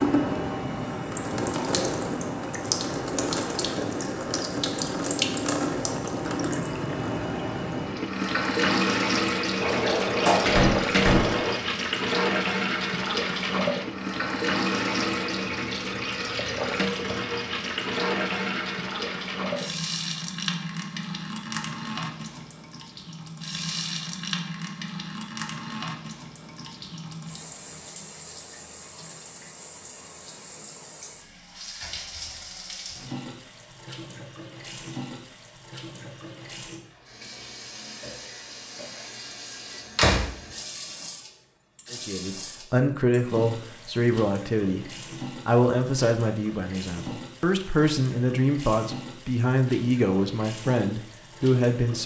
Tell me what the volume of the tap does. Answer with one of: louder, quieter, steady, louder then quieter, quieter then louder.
quieter.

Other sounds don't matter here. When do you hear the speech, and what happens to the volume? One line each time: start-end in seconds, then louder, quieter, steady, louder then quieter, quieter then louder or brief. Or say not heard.
41.9-52.0 steady.